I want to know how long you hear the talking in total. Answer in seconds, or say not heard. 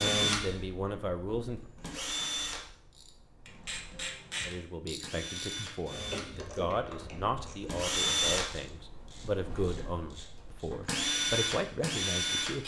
10 s.